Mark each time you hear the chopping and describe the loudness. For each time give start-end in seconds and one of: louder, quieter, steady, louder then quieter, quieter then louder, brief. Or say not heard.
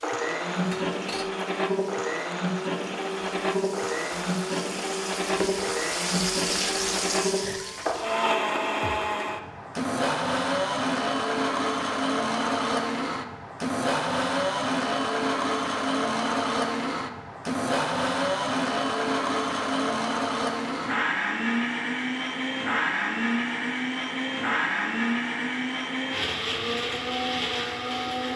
not heard.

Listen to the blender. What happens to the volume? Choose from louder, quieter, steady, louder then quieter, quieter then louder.
steady.